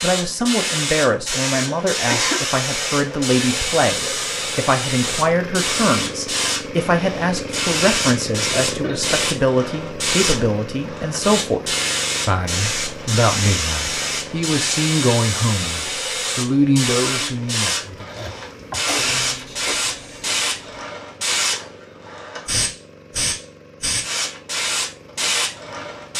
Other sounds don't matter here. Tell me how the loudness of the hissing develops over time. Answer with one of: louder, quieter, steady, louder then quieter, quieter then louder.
steady.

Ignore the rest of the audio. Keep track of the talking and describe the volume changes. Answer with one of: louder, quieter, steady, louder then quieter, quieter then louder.
steady.